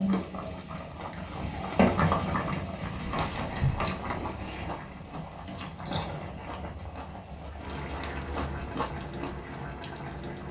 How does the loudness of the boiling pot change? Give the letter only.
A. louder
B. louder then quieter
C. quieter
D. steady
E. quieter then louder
C.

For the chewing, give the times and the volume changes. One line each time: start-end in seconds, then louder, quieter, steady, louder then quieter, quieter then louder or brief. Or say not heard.
2.9-10.0 quieter then louder.